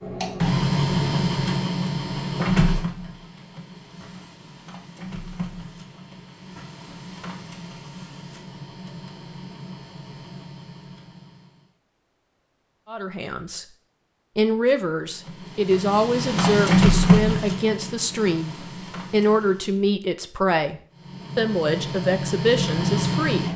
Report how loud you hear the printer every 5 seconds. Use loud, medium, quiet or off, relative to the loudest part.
loud, quiet, quiet, loud, loud.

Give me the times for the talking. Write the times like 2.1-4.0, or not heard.
12.9-13.7, 14.3-23.4.